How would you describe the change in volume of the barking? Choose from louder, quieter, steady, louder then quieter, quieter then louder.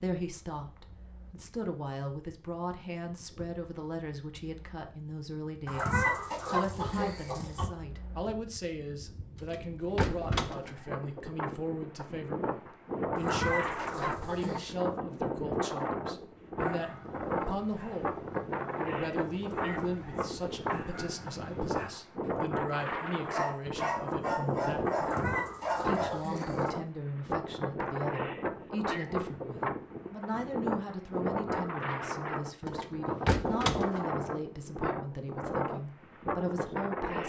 louder.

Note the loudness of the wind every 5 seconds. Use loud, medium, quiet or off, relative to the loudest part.
quiet, quiet, loud, loud, loud, loud, loud, loud.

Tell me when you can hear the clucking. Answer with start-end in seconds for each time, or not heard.
5.7-7.7, 13.2-14.8, 24.9-26.8.